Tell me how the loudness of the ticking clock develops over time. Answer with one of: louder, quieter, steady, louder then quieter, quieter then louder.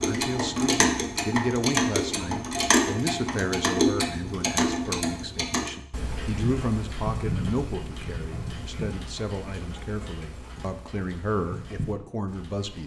quieter.